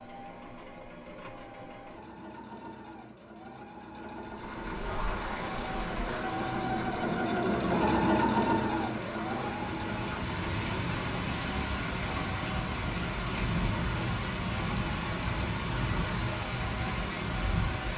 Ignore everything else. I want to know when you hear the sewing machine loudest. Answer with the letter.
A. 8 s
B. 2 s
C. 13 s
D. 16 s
A.